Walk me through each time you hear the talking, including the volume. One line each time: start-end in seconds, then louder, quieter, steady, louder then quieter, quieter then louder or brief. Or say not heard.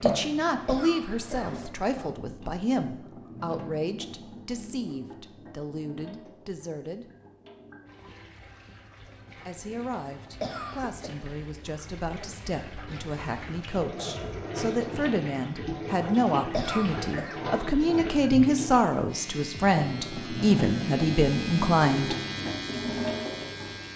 0.0-7.1 quieter
9.3-22.1 louder.